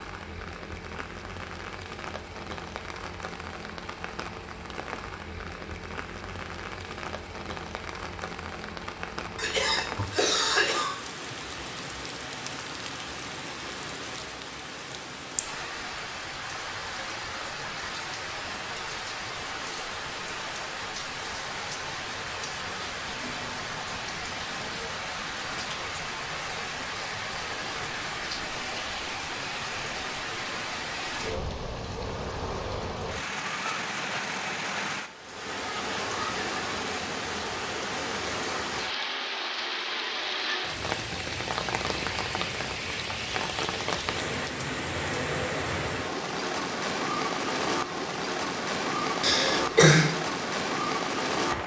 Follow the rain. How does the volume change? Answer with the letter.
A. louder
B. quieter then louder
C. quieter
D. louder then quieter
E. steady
A.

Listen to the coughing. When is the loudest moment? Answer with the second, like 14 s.
50 s.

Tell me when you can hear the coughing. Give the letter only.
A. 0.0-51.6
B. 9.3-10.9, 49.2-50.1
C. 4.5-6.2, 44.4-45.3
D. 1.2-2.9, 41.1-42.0
B.